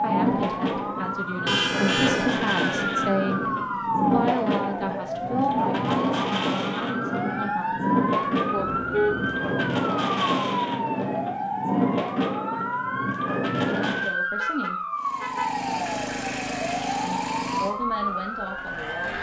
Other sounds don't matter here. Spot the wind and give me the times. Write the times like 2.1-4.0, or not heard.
0.0-14.2.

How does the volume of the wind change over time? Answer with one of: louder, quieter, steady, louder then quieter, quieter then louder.
steady.